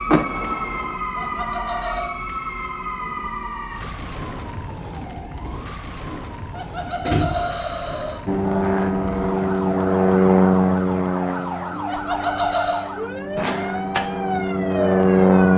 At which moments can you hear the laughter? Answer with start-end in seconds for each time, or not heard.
1.1-2.1, 6.5-8.2, 11.8-12.9.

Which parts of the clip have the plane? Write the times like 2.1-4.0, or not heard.
8.2-15.5.